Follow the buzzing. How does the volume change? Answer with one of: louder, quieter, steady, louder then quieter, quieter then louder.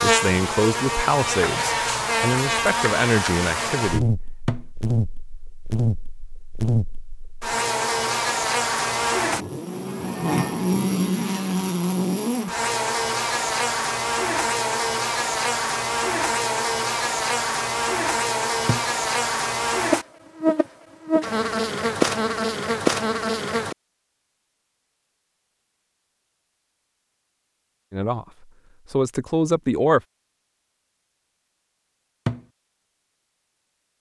steady.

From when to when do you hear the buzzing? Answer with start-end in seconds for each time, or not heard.
0.0-23.8.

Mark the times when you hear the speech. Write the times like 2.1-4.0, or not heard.
0.0-4.1, 27.9-30.0.